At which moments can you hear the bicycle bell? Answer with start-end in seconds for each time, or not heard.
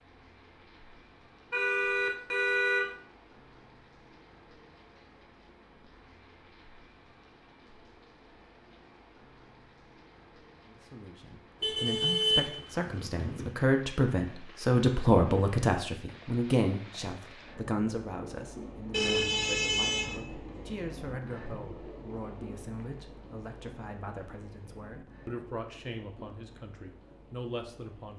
not heard.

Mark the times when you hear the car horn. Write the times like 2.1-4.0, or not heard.
1.5-2.9, 11.6-13.5, 18.9-20.2.